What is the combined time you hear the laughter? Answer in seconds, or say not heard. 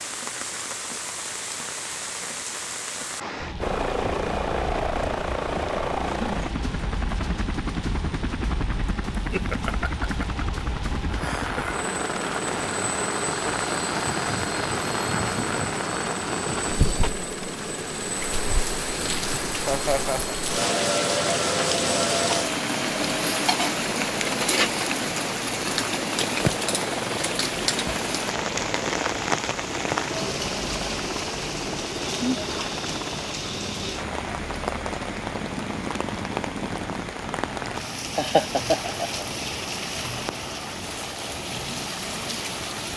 5 s.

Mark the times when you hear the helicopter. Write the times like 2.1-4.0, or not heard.
3.6-42.9.